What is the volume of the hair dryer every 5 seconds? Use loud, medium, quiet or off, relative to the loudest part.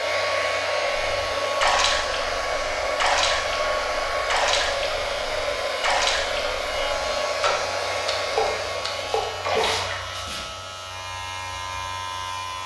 loud, loud, quiet.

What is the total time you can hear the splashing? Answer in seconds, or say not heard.
9 s.